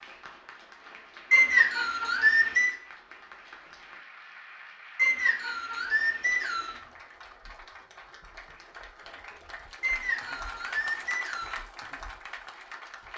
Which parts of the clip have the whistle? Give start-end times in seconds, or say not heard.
1.3-2.8, 5.0-6.8, 9.8-11.6.